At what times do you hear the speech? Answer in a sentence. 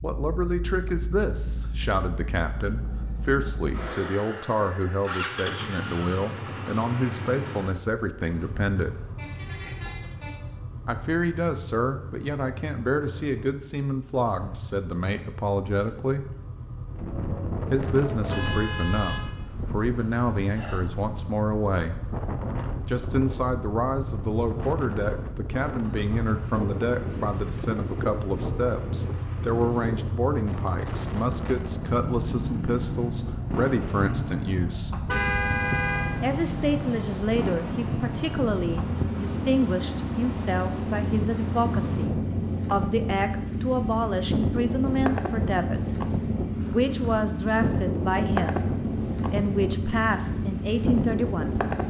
The speech can be heard from 0.0 to 8.9 s, from 10.8 to 16.2 s, from 17.7 to 22.1 s, from 22.9 to 35.0 s and from 36.2 to 51.5 s.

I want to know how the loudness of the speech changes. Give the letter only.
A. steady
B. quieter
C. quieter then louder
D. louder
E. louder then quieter
A.